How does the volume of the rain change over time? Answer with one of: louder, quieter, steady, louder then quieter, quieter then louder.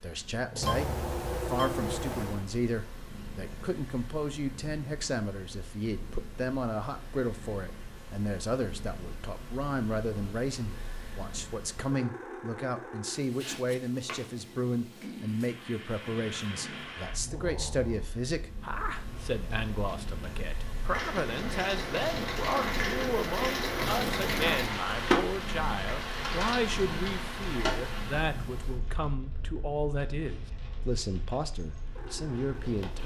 louder then quieter.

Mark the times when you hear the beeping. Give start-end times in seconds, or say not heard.
0.6-2.5.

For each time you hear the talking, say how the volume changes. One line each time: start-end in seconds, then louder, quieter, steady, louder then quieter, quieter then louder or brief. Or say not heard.
0.0-33.0 steady.